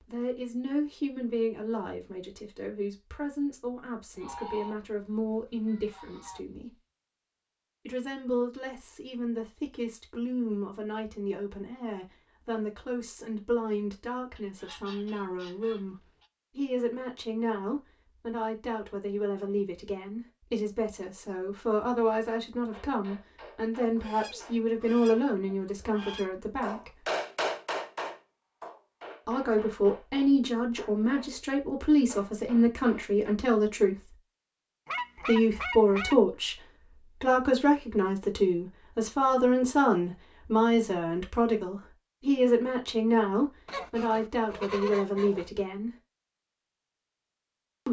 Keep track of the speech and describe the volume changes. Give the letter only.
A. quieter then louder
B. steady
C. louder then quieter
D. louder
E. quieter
D.